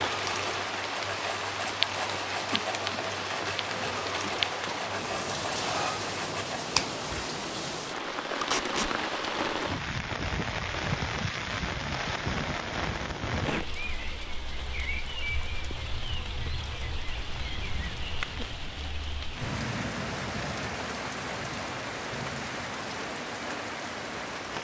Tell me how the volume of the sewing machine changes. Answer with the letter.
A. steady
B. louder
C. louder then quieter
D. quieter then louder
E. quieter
A.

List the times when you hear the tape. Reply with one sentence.
The tape can be heard from 8.4 to 8.9 s.